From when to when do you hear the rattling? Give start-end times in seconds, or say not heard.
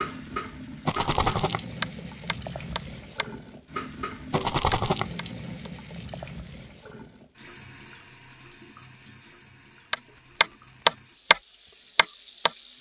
0.8-1.6, 4.3-5.0, 10.1-11.1.